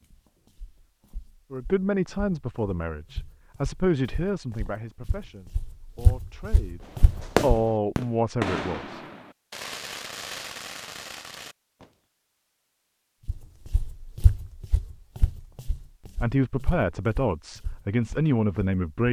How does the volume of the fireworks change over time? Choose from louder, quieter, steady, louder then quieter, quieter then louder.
quieter.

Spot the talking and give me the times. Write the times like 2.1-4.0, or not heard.
1.5-9.0, 16.2-19.0.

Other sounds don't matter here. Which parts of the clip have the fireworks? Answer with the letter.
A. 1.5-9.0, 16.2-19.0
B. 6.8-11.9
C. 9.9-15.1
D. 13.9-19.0
B.